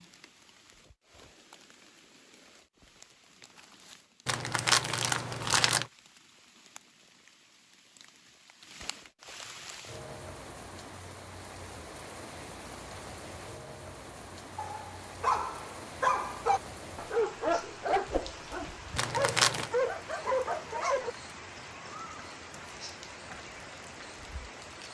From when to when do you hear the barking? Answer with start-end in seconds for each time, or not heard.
14.6-21.1.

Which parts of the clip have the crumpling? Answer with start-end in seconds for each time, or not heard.
4.2-5.8, 18.9-19.7.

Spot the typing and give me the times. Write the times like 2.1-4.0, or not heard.
not heard.